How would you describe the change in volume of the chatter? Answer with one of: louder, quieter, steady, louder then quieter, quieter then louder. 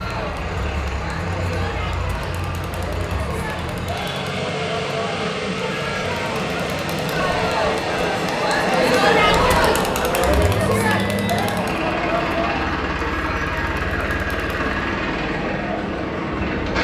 louder then quieter.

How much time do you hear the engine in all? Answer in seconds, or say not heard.
17 s.